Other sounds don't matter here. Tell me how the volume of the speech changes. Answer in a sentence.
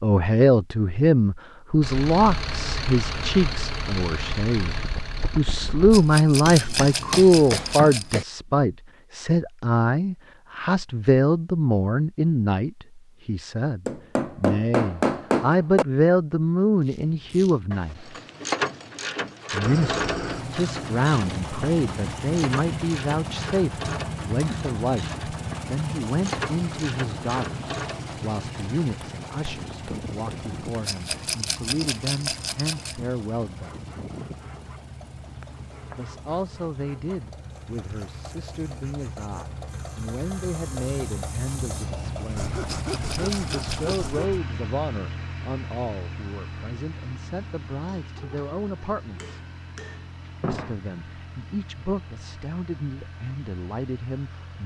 The volume of the speech goes down.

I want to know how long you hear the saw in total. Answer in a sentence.
The saw can be heard for 11 seconds in total.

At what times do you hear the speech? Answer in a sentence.
The speech can be heard from 0.0 to 18.1 s, from 19.5 to 33.9 s, from 36.0 to 49.4 s and from 50.5 to 54.6 s.